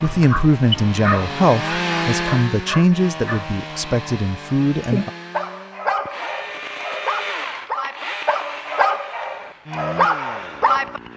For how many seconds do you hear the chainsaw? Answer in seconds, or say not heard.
11 s.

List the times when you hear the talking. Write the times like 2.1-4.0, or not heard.
0.0-5.1.